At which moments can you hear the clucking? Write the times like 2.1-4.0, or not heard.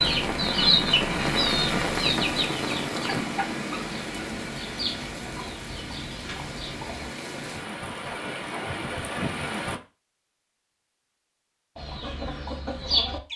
0.0-7.1, 11.8-13.3.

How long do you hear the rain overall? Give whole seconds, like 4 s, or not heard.
10 s.